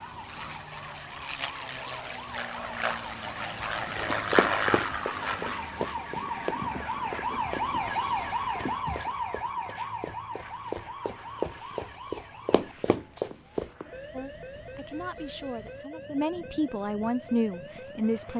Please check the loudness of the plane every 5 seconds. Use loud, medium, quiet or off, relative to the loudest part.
loud, medium, quiet, quiet.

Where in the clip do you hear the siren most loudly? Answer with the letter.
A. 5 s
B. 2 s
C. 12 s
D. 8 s
D.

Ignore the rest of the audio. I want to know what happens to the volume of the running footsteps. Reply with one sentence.
The volume of the running footsteps goes down, then up.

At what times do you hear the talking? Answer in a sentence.
You can hear the talking from 14.1 to 18.3 s.